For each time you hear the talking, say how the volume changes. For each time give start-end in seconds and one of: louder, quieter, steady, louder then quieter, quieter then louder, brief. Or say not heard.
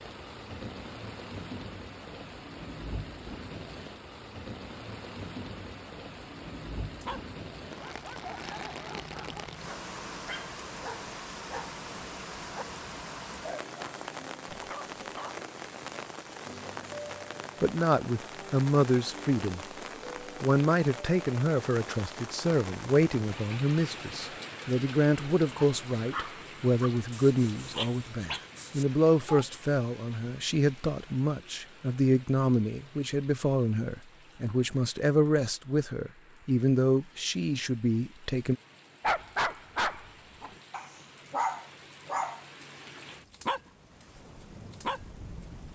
17.6-19.6 brief
20.4-38.5 steady.